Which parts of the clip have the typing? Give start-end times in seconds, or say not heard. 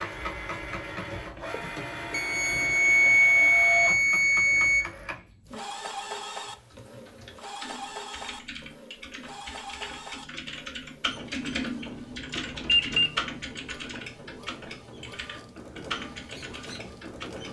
6.5-17.4.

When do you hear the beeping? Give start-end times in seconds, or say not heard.
2.1-4.8, 12.3-13.1.